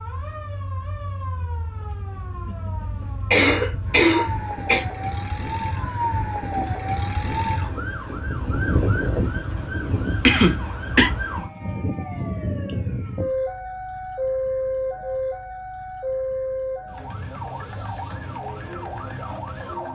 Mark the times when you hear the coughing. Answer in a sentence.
The coughing can be heard from 3.3 to 4.8 s and from 10.2 to 11.1 s.